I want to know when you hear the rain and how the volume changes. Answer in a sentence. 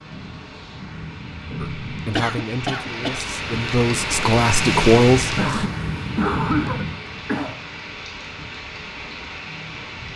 The rain can be heard from 0.0 to 10.1 s, getting louder then quieter.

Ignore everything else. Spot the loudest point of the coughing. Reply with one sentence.
The loudest moment of the coughing is at 6 seconds.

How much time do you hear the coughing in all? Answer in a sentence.
You can hear the coughing for 3 seconds altogether.